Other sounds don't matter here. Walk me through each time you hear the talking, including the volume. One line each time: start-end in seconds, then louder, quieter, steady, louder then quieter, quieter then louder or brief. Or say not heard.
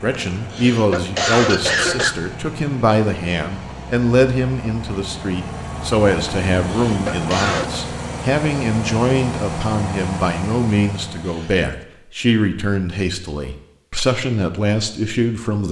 0.0-15.6 steady.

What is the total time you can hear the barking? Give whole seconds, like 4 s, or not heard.
not heard.